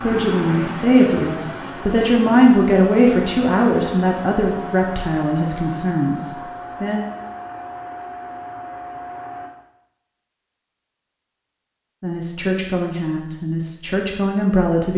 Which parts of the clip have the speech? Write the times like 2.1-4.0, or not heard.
0.0-7.0, 12.0-14.9.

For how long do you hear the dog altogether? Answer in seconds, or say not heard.
not heard.